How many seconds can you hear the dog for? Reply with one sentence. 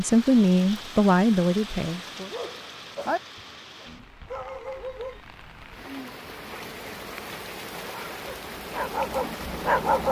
The dog can be heard for 5 seconds in total.